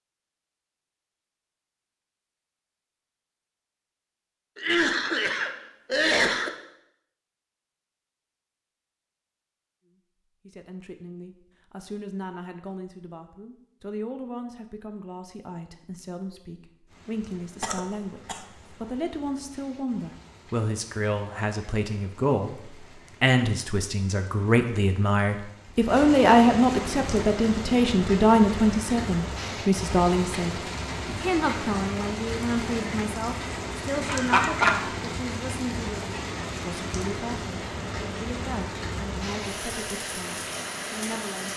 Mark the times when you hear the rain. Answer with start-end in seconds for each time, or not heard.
16.9-41.5.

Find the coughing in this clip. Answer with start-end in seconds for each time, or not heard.
4.5-6.5, 17.6-18.4, 34.0-34.8.